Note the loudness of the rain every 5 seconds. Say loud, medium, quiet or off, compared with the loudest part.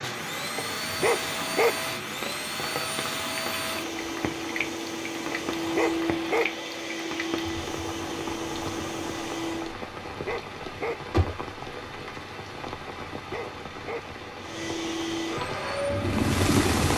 medium, medium, medium, loud.